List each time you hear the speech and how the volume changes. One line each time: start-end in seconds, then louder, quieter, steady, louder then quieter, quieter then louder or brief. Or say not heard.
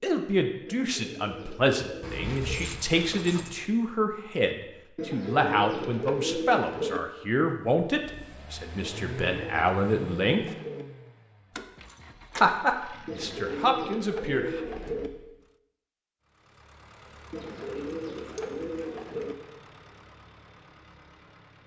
0.0-10.4 steady
12.4-14.6 brief.